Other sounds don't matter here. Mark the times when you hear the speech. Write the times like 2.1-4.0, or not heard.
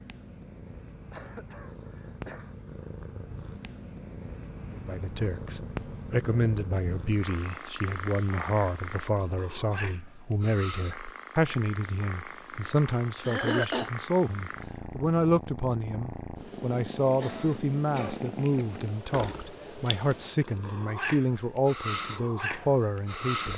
4.7-23.5.